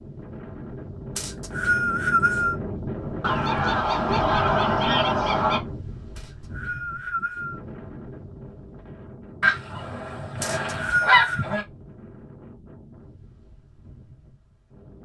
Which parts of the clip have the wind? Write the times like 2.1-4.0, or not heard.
0.0-15.0.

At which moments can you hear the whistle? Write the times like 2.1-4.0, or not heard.
1.1-2.5, 6.2-7.6, 10.4-11.4.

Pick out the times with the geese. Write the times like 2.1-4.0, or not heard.
3.2-5.6, 9.4-11.7.